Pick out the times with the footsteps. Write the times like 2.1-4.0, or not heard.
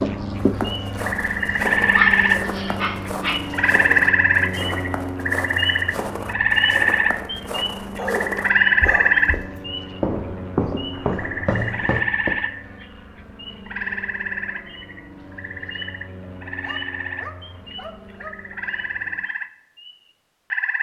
0.4-12.3.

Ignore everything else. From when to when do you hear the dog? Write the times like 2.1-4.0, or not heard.
1.9-3.4, 8.0-9.6, 16.4-18.4.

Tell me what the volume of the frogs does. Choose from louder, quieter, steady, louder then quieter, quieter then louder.
quieter.